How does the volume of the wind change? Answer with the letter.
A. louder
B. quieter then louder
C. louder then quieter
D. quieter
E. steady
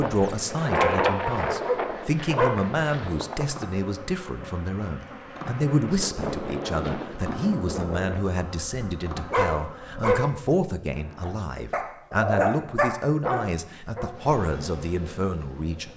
B.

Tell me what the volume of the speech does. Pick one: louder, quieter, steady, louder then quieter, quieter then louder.
steady.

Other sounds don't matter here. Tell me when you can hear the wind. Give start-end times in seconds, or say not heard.
0.0-8.2.